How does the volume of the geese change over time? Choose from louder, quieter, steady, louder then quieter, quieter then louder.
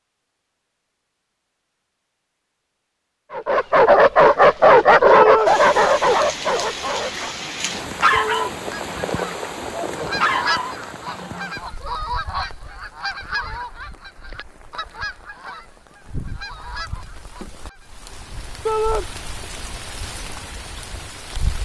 quieter.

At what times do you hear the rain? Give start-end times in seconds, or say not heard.
5.5-21.6.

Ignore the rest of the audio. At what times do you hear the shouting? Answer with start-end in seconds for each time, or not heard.
5.1-5.5, 8.1-8.6, 18.6-19.1.